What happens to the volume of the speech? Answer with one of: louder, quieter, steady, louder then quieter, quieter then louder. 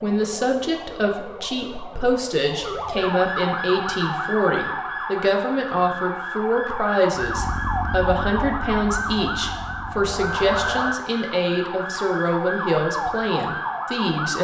steady.